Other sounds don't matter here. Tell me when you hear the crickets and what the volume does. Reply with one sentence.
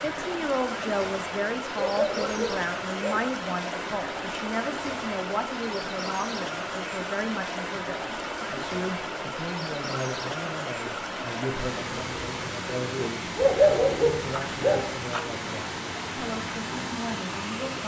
You can't hear the crickets here.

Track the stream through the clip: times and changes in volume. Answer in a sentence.
The stream can be heard from 0.0 to 17.8 s, at a steady volume.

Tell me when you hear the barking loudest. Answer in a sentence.
The volume of the barking peaks at 14 seconds.